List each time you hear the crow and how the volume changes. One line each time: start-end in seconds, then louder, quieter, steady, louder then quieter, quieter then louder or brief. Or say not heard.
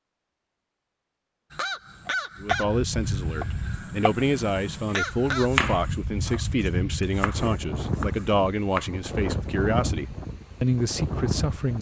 1.5-5.7 quieter then louder.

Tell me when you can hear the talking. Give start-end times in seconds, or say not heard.
2.4-11.7.